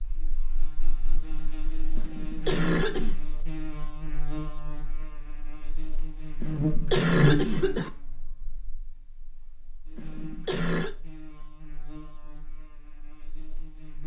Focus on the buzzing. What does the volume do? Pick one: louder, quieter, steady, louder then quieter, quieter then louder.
louder then quieter.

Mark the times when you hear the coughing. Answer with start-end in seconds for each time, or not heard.
1.9-3.1, 6.4-7.9, 9.9-10.9.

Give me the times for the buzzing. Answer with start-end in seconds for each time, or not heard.
0.0-14.0.